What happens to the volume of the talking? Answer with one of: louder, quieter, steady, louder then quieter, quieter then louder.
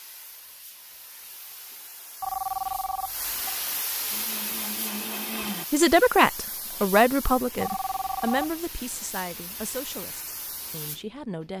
quieter.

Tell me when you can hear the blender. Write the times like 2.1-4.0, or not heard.
4.1-5.7.